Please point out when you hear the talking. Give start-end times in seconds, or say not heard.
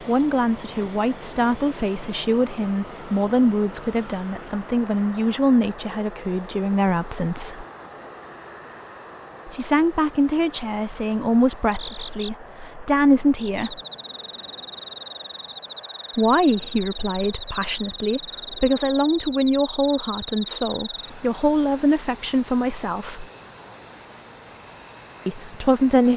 0.1-7.7, 9.4-13.8, 16.1-23.2, 25.2-26.1.